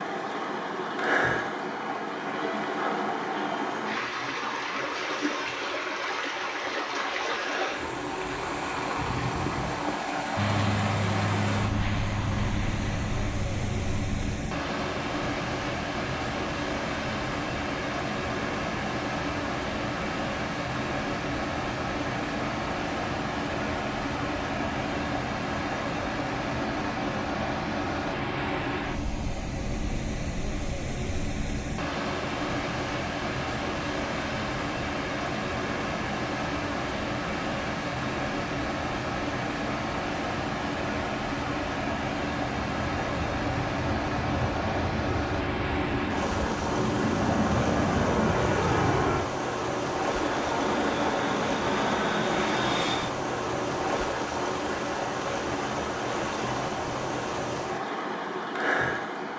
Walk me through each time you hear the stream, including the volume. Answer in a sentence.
The stream can be heard from 0.0 to 59.3 s, at a steady volume.